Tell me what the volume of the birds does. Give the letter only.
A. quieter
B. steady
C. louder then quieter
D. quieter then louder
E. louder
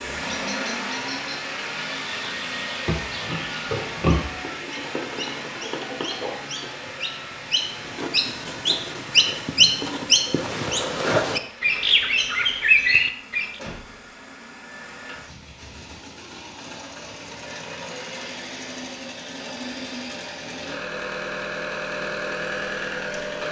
E.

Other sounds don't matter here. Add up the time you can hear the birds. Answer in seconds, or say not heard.
13 s.